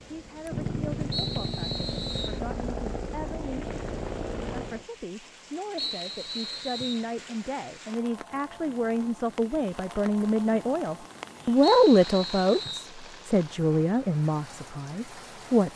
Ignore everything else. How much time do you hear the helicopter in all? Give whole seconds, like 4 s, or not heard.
5 s.